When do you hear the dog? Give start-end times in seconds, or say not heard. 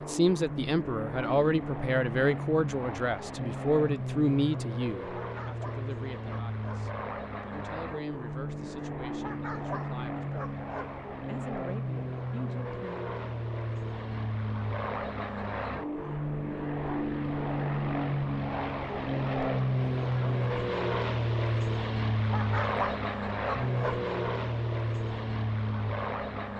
5.2-6.9, 9.2-10.9, 22.2-24.1.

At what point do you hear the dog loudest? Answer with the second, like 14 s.
23 s.